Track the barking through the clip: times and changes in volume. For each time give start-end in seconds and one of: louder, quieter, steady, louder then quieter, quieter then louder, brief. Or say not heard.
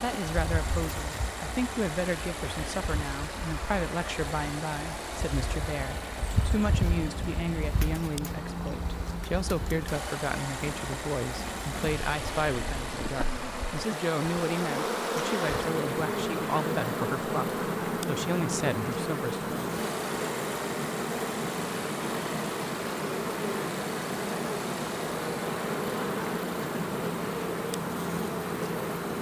not heard.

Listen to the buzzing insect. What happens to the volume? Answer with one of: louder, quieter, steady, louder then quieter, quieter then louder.
louder.